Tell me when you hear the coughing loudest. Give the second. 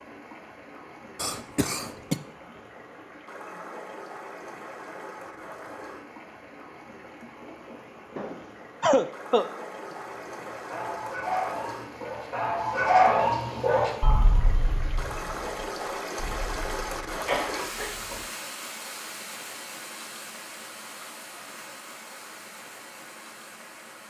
9 s.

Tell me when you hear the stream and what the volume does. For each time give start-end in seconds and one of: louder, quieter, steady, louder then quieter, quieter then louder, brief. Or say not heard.
0.0-24.0 louder then quieter.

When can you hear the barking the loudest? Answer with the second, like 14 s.
13 s.